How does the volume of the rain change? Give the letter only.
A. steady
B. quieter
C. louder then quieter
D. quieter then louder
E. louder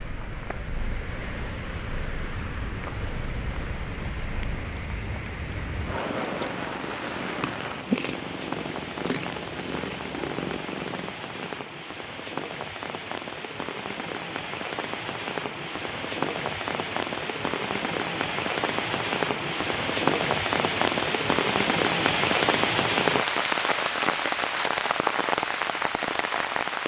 E.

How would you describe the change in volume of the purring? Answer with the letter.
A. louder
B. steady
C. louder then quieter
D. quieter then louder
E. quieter
A.